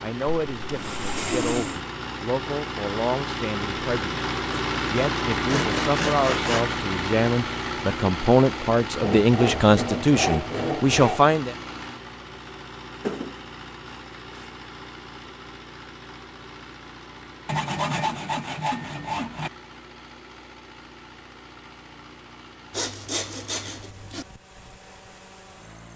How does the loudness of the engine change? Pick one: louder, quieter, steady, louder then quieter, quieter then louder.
quieter.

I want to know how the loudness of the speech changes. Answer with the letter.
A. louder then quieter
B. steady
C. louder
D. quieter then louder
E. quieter
C.